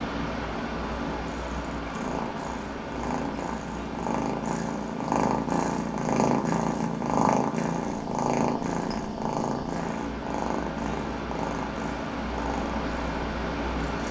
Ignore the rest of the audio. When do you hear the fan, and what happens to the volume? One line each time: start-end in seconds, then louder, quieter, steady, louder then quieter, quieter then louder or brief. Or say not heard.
0.0-14.0 quieter then louder.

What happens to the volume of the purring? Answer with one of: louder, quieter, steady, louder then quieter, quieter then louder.
louder then quieter.